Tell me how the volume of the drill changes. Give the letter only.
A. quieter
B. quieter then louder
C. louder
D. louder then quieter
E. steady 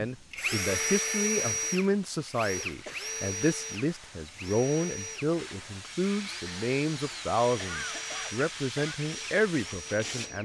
A.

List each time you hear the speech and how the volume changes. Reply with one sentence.
You can hear the speech from 0.0 to 10.4 s, at a steady volume.